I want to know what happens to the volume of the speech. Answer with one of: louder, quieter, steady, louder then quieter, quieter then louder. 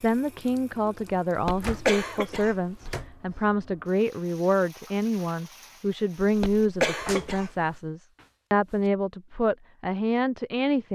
steady.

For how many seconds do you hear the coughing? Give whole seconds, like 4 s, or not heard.
3 s.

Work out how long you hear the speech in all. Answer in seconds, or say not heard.
11 s.